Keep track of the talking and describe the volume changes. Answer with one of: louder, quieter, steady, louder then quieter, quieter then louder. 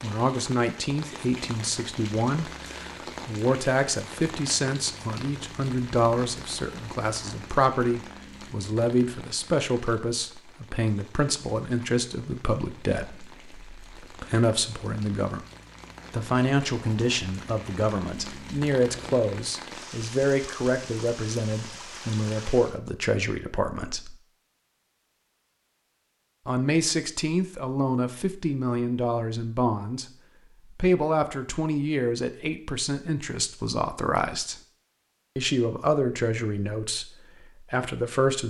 steady.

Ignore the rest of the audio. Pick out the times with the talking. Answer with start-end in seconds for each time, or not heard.
0.0-15.4, 16.1-24.1, 26.4-34.6, 35.4-38.4.